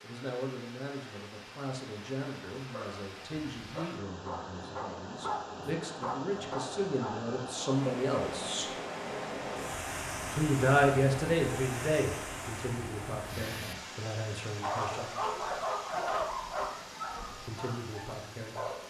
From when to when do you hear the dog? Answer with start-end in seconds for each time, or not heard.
2.6-7.3, 14.6-18.8.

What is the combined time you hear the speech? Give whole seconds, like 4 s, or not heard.
15 s.